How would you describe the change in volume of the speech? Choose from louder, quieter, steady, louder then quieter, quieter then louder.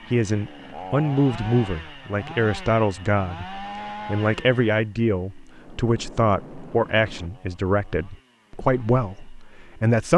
steady.